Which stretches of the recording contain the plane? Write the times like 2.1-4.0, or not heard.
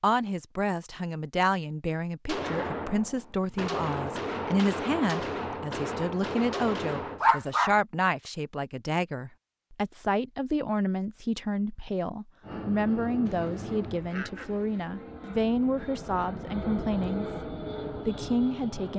12.4-18.9.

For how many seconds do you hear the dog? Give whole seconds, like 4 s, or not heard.
2 s.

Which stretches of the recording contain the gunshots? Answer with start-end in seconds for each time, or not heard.
2.2-7.2.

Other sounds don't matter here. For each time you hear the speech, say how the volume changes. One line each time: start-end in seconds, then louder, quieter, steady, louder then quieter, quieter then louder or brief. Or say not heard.
0.0-17.3 steady
18.1-18.9 brief.